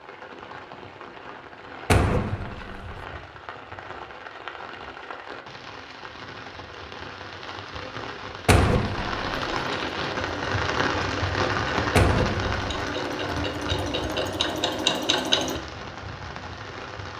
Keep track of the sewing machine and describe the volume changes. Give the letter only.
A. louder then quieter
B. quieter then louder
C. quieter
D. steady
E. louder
E.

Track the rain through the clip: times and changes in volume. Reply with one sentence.
The rain can be heard from 0.0 to 17.1 s, getting louder then quieter.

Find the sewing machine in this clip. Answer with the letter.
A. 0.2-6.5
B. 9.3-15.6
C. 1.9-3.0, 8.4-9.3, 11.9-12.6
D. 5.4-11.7
B.